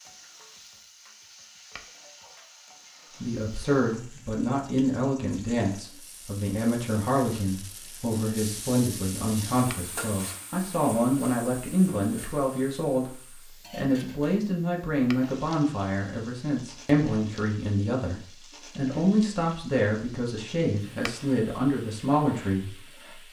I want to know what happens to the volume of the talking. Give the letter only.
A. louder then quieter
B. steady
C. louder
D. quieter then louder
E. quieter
B.